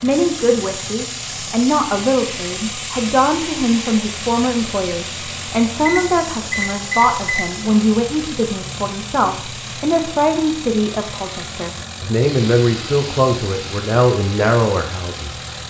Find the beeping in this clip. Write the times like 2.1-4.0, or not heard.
5.8-7.5.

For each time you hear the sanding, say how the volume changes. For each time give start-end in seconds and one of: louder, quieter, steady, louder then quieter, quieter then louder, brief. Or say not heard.
not heard.